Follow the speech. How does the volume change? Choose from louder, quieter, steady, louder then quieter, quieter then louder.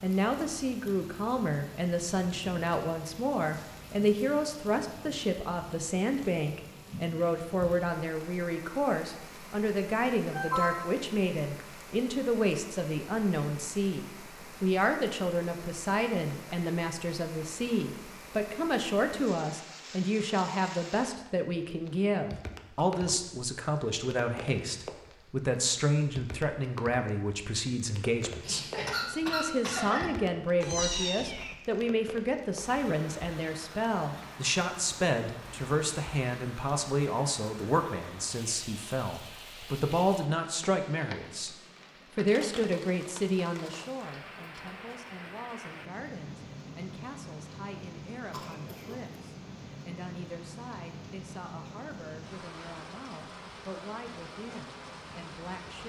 quieter.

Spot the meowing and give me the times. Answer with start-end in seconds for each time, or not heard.
30.6-31.6.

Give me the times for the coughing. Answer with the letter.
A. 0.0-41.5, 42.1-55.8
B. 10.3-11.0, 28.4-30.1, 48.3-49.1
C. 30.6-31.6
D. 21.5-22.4
B.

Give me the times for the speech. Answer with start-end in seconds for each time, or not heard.
0.0-41.5, 42.1-55.8.